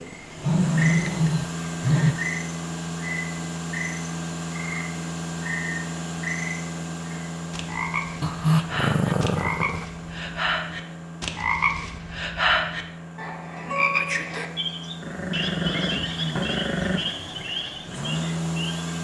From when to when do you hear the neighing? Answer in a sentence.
You can't hear the neighing here.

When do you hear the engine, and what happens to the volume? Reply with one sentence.
The engine can be heard from 0.0 to 19.0 s, getting quieter then louder.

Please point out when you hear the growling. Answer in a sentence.
The growling can be heard from 0.1 to 2.1 s, from 8.2 to 9.8 s and from 15.0 to 17.0 s.